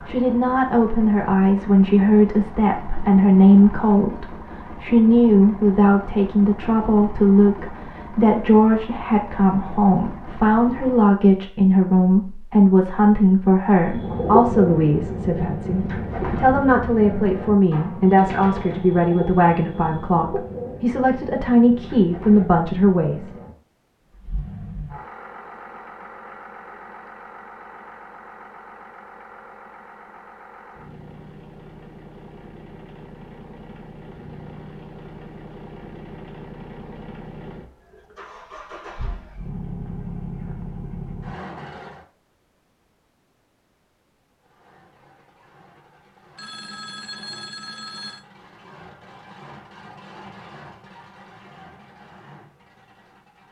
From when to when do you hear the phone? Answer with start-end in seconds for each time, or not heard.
46.4-48.2.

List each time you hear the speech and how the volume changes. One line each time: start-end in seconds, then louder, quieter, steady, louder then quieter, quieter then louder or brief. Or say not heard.
0.1-23.2 steady.